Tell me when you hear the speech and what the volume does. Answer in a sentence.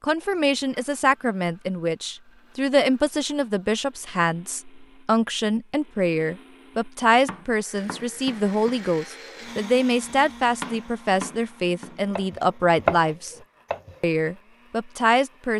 The speech can be heard from 0.0 to 13.3 s, at a steady volume; and briefly from 14.0 to 15.5 s.